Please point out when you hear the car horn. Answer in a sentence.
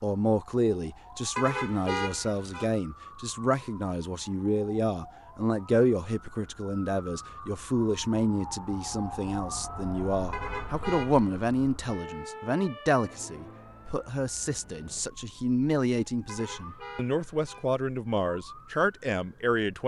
You can hear the car horn from 1.4 to 2.7 s, from 10.3 to 11.4 s and from 16.2 to 17.6 s.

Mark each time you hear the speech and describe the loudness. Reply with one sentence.
The speech can be heard from 0.0 to 19.8 s, at a steady volume.